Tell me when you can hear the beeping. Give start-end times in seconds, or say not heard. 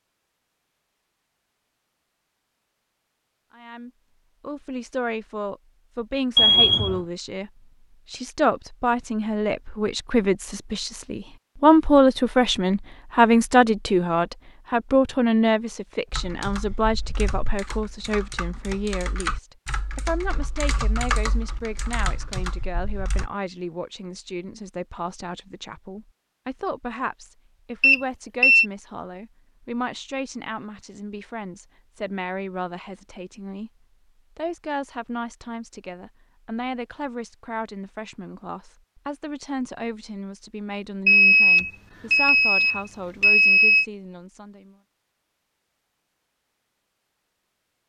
6.3-7.0, 27.8-28.6, 41.0-43.9.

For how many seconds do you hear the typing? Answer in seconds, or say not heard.
7 s.